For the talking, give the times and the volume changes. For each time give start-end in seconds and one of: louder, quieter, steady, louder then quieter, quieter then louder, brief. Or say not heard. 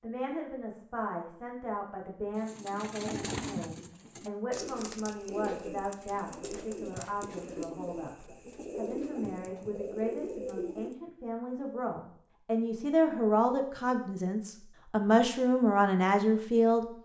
0.0-16.9 louder.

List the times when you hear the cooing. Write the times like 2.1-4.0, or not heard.
2.4-10.9.